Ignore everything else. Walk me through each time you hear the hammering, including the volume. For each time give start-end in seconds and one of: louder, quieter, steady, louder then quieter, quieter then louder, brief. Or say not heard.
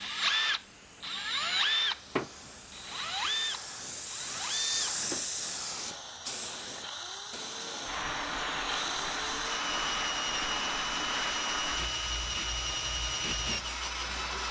not heard.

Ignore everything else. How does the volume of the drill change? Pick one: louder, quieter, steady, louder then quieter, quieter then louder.
quieter then louder.